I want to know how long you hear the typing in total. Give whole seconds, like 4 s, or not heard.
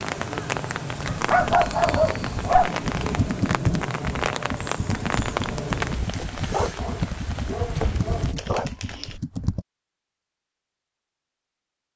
9 s.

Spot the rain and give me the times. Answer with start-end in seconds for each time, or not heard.
0.0-8.3.